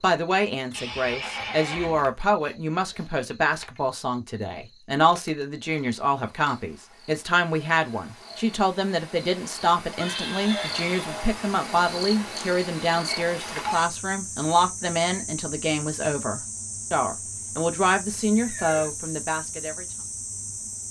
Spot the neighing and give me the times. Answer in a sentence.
The neighing can be heard from 0.7 to 2.1 s, from 9.9 to 11.2 s and from 18.3 to 18.9 s.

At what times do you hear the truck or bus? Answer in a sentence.
You can't hear the truck or bus here.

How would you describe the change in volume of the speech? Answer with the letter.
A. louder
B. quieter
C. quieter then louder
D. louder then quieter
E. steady
E.